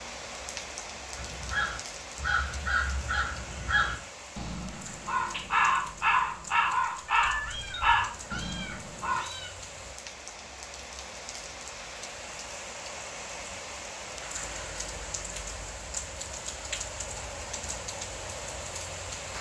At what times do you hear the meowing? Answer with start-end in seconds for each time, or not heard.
7.2-9.5.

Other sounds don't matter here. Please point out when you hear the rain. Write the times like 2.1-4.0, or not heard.
0.0-19.3.